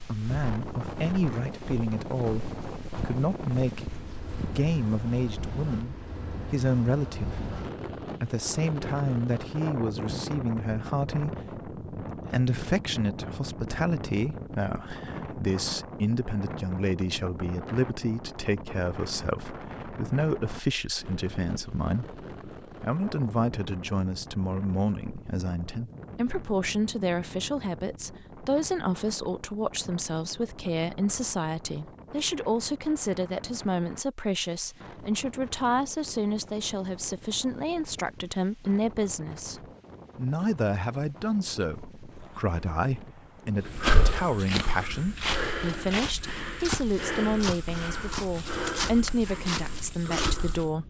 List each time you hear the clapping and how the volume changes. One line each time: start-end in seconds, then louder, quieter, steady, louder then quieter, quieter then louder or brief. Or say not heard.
not heard.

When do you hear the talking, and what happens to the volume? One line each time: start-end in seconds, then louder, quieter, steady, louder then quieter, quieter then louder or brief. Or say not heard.
0.1-50.8 steady.